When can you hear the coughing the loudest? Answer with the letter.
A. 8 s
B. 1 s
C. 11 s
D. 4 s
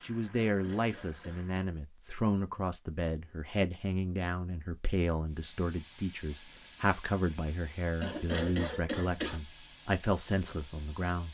A.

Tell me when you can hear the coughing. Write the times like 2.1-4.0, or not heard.
0.5-1.4, 8.0-9.4.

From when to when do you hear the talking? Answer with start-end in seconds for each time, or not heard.
0.0-11.2.